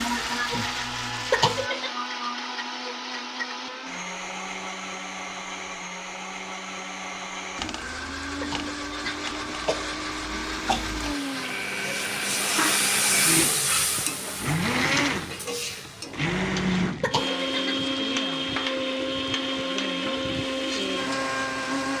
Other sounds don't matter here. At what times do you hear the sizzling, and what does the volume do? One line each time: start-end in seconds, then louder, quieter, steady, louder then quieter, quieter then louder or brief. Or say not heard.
0.0-1.7 brief
7.5-21.9 louder then quieter.